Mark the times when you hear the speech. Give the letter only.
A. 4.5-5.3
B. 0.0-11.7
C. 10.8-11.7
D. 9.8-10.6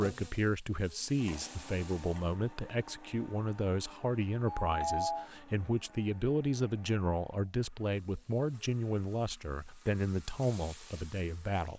B.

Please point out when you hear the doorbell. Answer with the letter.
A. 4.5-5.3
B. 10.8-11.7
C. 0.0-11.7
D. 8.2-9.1
A.